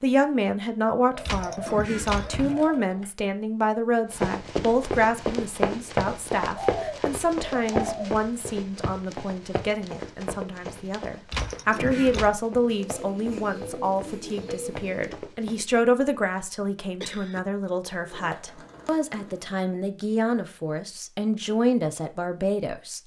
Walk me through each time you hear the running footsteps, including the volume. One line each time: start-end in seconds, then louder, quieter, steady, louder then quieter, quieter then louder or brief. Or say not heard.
4.1-15.7 quieter.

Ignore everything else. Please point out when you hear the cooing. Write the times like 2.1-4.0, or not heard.
1.1-3.0, 6.5-8.1, 12.7-15.2, 17.9-19.6.